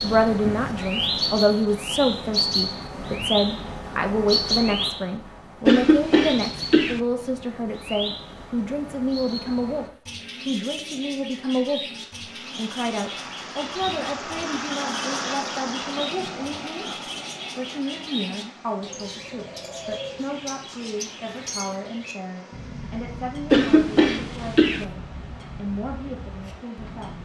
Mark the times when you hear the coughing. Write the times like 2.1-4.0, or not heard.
5.7-7.0, 23.5-24.9.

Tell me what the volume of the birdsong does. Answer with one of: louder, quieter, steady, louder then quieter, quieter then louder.
quieter.